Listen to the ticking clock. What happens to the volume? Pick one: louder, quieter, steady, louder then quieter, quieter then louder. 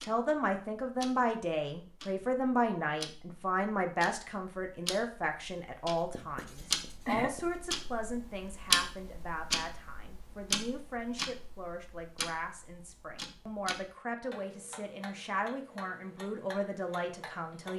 louder then quieter.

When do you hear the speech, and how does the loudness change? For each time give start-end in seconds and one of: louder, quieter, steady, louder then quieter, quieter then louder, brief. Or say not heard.
0.0-17.7 quieter.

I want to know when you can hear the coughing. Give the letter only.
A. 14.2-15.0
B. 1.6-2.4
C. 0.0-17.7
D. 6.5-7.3
D.